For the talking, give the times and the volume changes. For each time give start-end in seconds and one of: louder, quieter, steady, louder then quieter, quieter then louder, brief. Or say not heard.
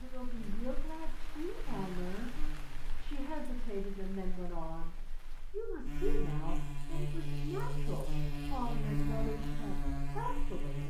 0.0-10.8 steady.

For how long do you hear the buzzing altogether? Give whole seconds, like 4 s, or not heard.
11 s.